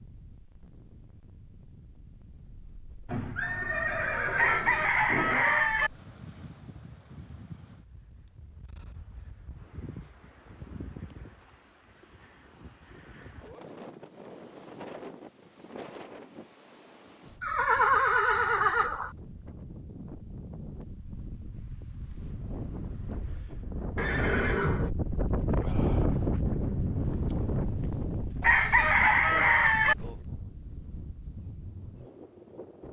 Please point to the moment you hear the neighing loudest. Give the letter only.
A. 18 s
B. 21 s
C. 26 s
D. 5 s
A.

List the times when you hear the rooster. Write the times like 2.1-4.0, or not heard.
4.3-5.9, 28.4-29.9.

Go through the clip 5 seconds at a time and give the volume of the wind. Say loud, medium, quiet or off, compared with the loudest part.
quiet, quiet, quiet, quiet, medium, loud, quiet.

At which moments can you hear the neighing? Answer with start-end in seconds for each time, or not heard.
3.0-5.8, 17.4-19.1, 23.9-24.9.